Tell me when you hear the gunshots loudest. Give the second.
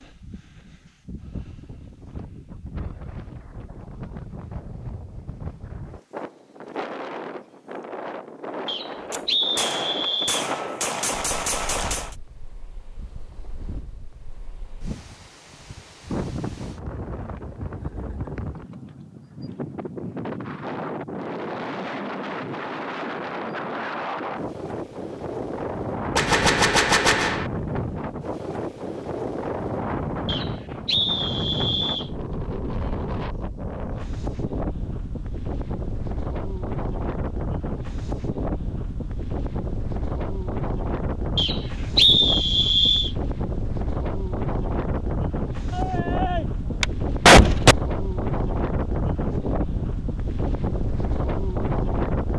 47 s.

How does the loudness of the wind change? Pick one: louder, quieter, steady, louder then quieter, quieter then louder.
louder.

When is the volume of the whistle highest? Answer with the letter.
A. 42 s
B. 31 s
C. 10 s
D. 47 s
A.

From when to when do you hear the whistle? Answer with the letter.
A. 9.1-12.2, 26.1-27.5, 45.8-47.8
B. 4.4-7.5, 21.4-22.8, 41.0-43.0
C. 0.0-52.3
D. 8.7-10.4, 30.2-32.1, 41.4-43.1
D.